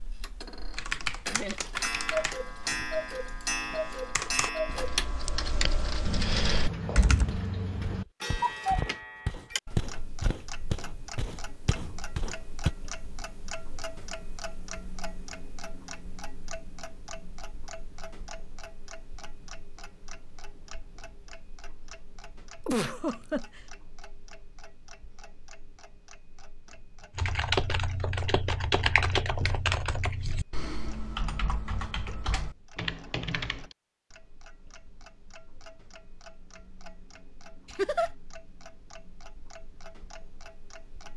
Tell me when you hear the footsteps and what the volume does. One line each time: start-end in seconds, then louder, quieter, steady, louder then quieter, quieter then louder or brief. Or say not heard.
6.7-12.7 louder then quieter.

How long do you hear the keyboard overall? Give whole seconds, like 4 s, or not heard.
13 s.